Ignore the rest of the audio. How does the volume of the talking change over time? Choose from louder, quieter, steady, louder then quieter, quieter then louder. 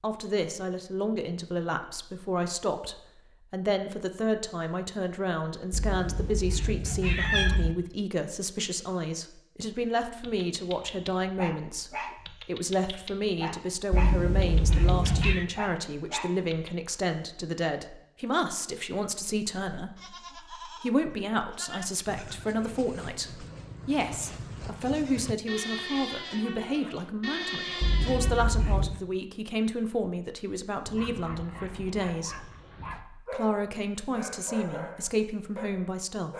steady.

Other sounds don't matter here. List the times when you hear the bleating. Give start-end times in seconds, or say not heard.
19.9-28.4.